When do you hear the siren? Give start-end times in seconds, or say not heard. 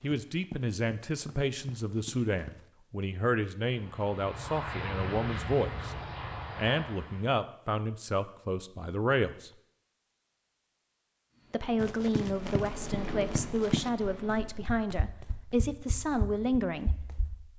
not heard.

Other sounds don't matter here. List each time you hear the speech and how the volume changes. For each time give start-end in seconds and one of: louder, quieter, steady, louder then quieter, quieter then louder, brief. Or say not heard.
0.0-6.0 steady
6.5-9.5 brief
11.5-17.5 steady.